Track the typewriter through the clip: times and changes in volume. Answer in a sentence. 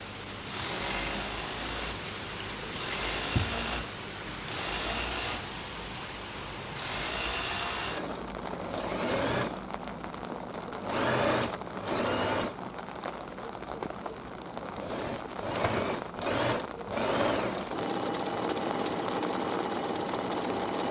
The typewriter can't be heard in this clip.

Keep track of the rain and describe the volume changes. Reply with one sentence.
The volume of the rain stays about the same.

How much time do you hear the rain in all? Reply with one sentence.
The rain can be heard for 21 seconds in total.